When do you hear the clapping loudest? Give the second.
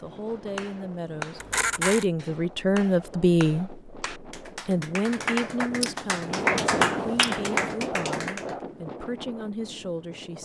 7 s.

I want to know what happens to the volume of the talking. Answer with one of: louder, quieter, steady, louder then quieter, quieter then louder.
louder then quieter.